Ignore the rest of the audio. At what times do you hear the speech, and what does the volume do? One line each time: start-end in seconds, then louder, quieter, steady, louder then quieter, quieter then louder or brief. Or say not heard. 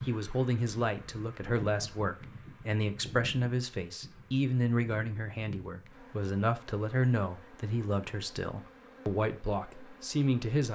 0.0-10.7 steady.